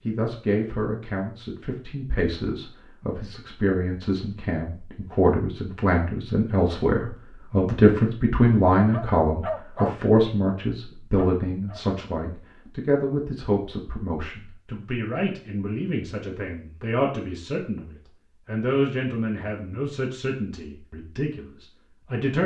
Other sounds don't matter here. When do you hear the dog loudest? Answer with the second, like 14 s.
10 s.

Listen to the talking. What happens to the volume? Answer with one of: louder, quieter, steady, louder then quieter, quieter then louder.
louder then quieter.